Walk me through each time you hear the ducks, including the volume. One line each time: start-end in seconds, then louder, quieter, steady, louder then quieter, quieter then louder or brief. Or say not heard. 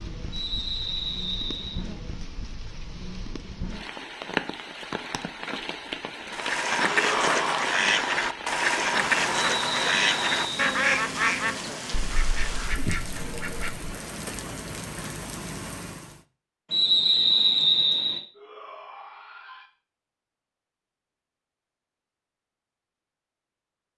6.3-13.9 quieter.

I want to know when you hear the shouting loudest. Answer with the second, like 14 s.
7 s.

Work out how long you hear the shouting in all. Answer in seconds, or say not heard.
2 s.